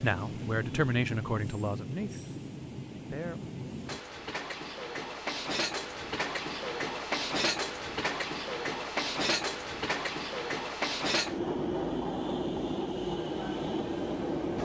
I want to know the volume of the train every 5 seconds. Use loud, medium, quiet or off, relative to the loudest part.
medium, loud, loud.